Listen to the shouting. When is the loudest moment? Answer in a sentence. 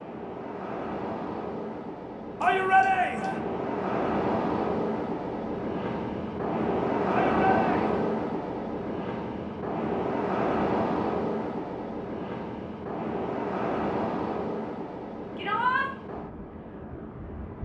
The volume of the shouting peaks at 3 seconds.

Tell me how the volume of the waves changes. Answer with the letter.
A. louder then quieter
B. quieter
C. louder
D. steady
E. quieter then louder
A.